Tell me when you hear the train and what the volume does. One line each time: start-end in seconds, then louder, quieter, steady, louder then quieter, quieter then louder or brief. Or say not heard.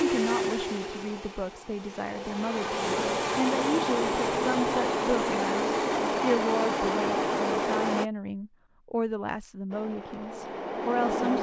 0.0-8.1 louder
9.7-11.3 brief.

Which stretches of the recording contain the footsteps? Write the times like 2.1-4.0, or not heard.
not heard.